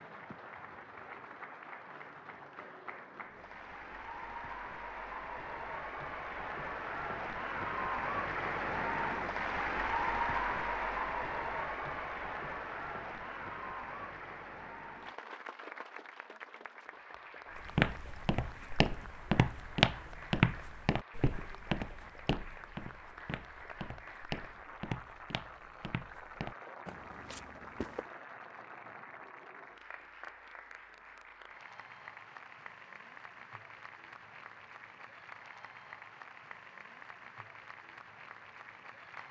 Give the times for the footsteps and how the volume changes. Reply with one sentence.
The footsteps can be heard from 17.6 to 28.1 s, getting quieter.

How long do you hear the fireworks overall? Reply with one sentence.
The fireworks can't be heard in this clip.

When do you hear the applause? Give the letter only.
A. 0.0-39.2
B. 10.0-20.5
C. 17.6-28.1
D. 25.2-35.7
A.